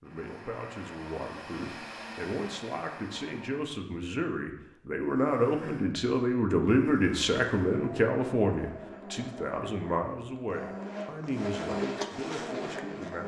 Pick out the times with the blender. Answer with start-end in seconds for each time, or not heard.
0.0-3.8, 5.0-13.2.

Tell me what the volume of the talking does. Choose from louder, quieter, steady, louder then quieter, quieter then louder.
louder then quieter.